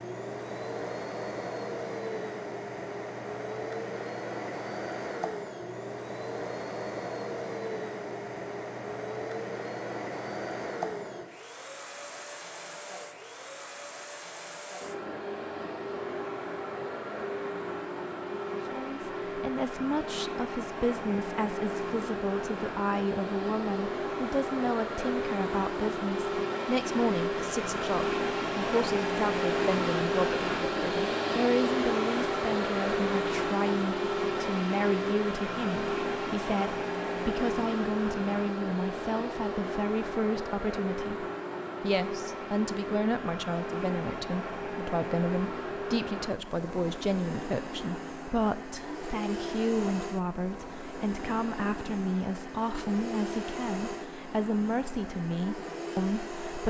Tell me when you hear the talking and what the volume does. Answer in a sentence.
You can hear the talking from 18.6 to 56.6 s, at a steady volume.